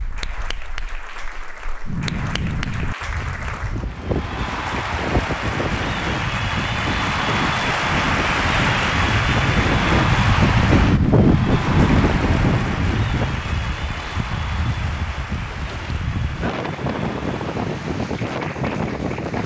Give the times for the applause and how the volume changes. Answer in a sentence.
You can hear the applause from 0.0 to 19.4 s, getting louder then quieter.